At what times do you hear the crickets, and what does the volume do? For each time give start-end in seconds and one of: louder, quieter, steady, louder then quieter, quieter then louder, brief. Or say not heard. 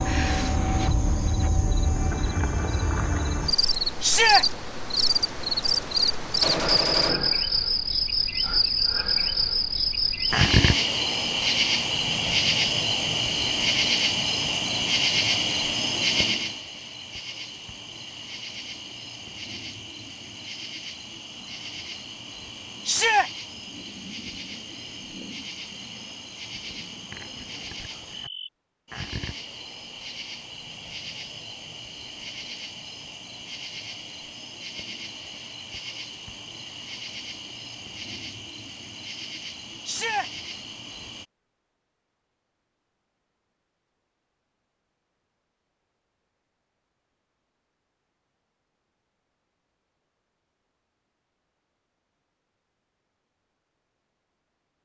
0.0-41.2 quieter.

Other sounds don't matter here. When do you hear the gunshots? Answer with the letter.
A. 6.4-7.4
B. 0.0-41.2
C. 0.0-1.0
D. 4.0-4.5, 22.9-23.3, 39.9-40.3
A.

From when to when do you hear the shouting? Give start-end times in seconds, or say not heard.
4.0-4.5, 22.9-23.3, 39.9-40.3.